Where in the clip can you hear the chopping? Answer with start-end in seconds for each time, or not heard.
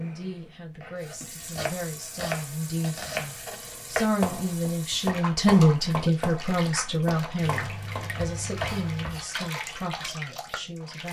0.8-10.7.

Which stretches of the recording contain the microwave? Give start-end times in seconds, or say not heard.
7.5-9.1.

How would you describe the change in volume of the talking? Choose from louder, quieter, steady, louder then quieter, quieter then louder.
louder then quieter.